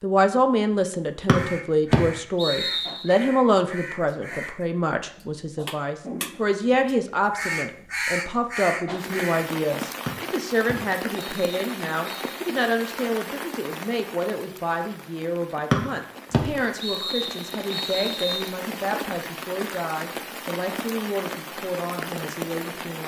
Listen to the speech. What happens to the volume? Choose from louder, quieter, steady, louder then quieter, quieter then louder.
quieter.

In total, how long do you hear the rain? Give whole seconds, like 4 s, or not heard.
14 s.